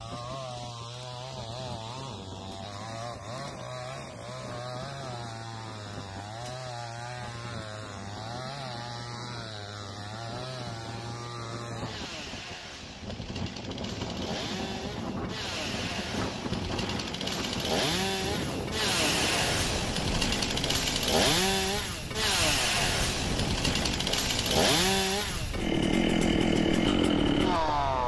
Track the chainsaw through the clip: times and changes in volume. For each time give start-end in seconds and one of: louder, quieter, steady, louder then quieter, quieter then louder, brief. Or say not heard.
0.0-28.0 louder.